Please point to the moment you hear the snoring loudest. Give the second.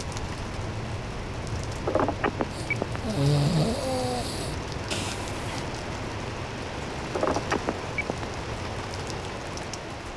3 s.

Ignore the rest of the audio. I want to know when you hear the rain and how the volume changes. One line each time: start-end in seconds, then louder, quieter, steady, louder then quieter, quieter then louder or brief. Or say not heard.
0.0-10.1 steady.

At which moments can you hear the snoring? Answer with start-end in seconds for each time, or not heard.
2.5-5.7.